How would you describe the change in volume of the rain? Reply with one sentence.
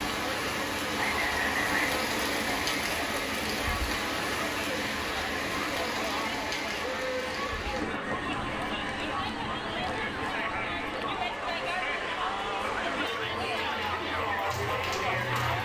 The loudness of the rain goes down.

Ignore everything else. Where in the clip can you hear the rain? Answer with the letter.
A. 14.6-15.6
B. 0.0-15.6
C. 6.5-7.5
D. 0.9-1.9
B.